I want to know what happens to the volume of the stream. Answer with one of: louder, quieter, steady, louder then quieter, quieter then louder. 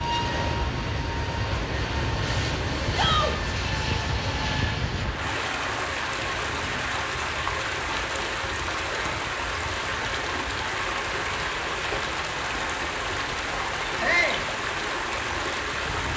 louder.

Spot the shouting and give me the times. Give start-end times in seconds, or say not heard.
2.9-3.4, 14.0-14.4.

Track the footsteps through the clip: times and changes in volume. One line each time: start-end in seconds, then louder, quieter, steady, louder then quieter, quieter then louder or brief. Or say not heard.
not heard.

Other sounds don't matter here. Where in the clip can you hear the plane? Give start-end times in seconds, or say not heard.
0.0-16.1.